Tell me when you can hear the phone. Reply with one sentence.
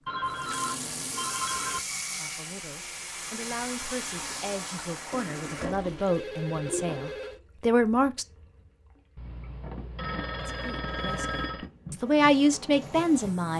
You can hear the phone from 0.1 to 1.8 s, from 5.1 to 7.4 s and from 9.2 to 11.7 s.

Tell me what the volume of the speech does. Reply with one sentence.
The loudness of the speech goes up.